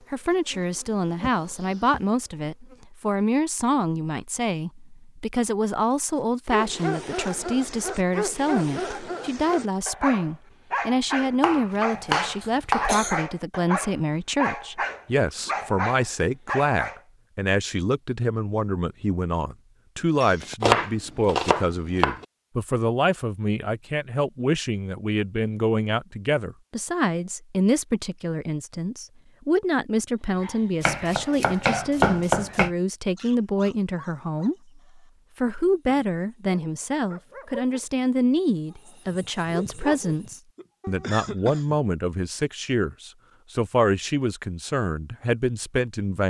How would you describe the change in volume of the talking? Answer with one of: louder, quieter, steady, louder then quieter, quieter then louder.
steady.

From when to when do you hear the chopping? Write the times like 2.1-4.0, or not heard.
11.4-12.9, 20.6-22.2, 30.8-32.7.